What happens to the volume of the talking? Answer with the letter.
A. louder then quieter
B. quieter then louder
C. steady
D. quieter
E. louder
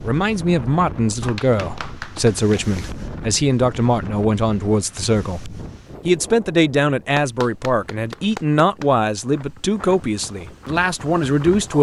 C.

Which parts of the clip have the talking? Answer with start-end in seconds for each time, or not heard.
0.0-11.7.